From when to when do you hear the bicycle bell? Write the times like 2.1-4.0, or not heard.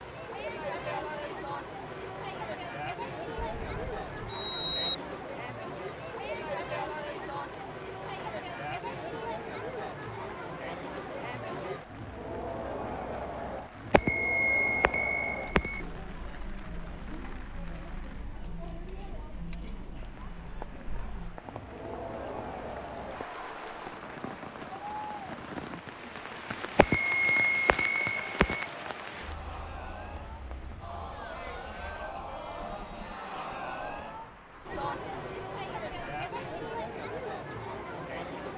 3.4-5.0, 13.9-15.8, 26.8-28.6.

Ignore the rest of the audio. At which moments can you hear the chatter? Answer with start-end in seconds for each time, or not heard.
0.0-38.5.